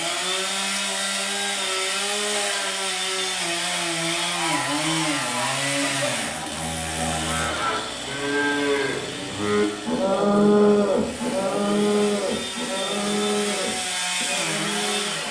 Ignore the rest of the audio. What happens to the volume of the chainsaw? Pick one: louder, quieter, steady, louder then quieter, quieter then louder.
quieter then louder.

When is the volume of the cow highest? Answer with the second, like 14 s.
11 s.